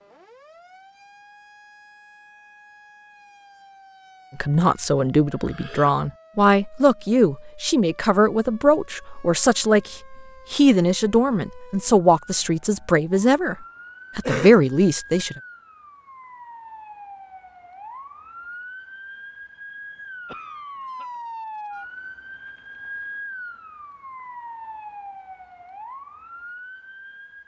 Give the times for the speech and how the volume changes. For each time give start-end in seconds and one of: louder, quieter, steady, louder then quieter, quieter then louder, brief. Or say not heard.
4.3-13.6 steady
14.2-15.4 brief.